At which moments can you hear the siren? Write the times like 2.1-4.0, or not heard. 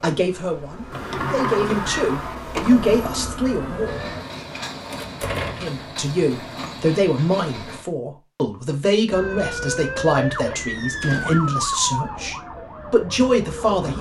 1.8-4.2, 9.1-13.9.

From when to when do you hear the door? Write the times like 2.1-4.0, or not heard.
0.9-2.9, 4.9-5.8, 11.0-11.5.